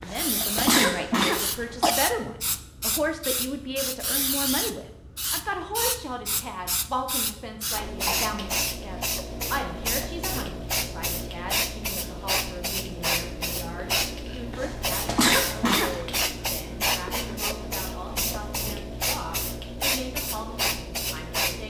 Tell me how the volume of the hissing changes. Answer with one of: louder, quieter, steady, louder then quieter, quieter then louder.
steady.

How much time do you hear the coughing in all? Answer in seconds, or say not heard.
4 s.